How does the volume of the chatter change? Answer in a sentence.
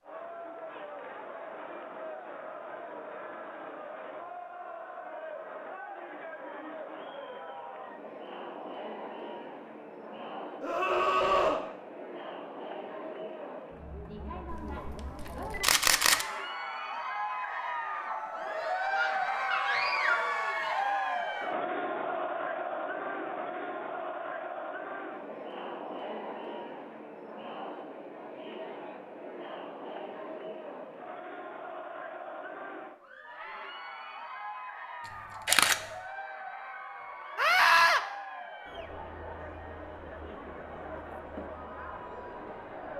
The volume of the chatter goes up, then down.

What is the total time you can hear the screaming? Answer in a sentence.
The screaming can be heard for 3 seconds in total.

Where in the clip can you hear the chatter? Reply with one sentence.
You can hear the chatter from 0.0 to 42.9 s.